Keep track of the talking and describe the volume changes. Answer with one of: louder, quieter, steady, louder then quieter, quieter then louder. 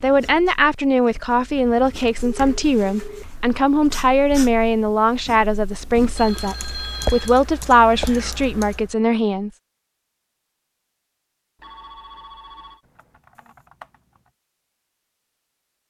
steady.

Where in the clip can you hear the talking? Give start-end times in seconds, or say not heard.
0.0-9.5.